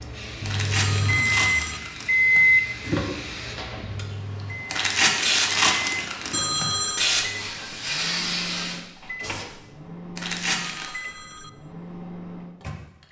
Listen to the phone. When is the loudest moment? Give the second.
7 s.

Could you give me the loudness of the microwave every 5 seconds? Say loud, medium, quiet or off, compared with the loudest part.
loud, quiet, quiet.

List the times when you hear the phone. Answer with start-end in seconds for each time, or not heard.
0.8-1.8, 6.3-7.1, 10.6-11.5.